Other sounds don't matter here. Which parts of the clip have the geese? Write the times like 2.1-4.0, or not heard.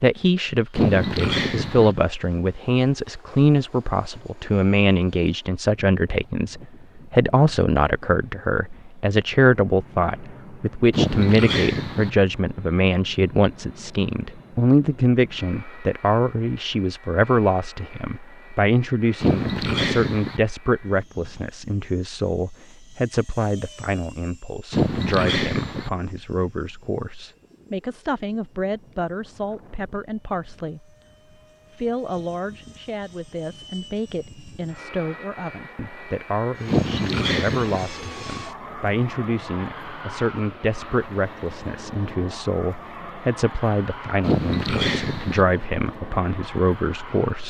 0.8-1.9, 10.9-12.1, 19.2-20.4, 24.7-25.9, 36.6-37.9, 44.2-45.5.